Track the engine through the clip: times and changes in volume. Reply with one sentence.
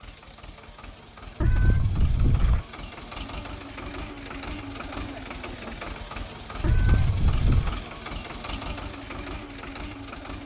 The engine can be heard from 0.0 to 10.4 s, getting louder.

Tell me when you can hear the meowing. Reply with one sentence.
The meowing can be heard from 1.4 to 2.6 s and from 6.6 to 7.8 s.